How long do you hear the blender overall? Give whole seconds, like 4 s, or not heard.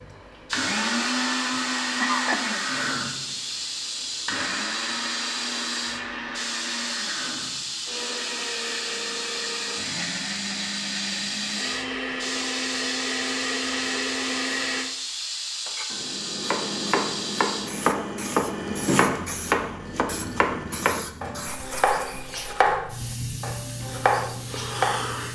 15 s.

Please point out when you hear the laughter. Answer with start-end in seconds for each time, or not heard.
1.6-2.5.